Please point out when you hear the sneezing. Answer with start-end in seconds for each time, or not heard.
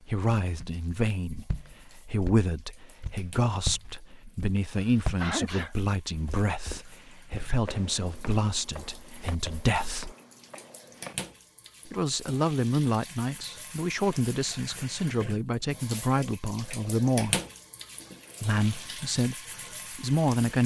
4.8-5.8.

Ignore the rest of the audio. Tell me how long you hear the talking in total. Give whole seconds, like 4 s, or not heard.
18 s.